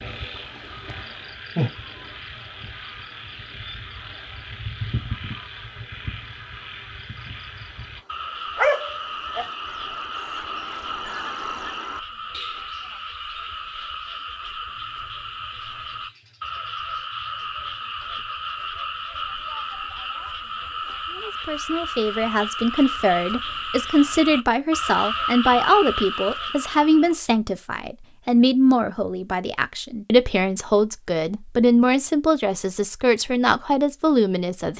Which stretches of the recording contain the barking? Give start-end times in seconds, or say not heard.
8.6-9.4.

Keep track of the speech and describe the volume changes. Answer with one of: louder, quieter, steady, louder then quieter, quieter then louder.
steady.